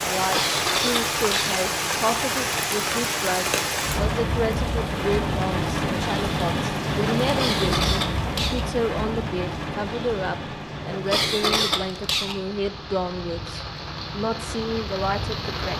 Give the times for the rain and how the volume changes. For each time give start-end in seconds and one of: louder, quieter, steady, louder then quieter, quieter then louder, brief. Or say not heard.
0.0-15.7 quieter.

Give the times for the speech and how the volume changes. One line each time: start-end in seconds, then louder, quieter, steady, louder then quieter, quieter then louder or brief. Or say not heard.
0.0-15.7 steady.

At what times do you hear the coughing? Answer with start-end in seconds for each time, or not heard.
0.1-1.6, 7.2-8.7, 10.8-12.4.